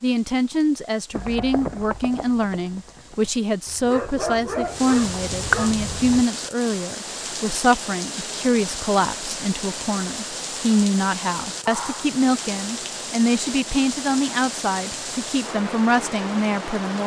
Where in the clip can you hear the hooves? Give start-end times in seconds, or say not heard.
1.1-6.2.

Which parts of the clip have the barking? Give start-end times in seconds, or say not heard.
3.9-5.8, 11.6-12.2.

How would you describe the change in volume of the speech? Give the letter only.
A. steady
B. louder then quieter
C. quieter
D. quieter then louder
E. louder
A.